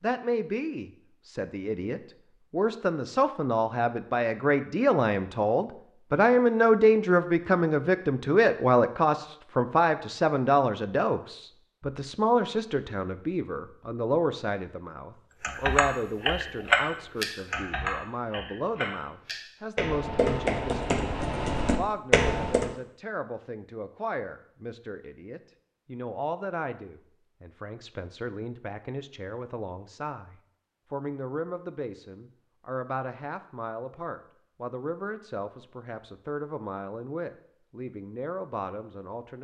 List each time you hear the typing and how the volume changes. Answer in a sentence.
You can hear the typing from 15.4 to 22.7 s, getting quieter then louder.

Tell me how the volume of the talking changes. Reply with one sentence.
The loudness of the talking goes down.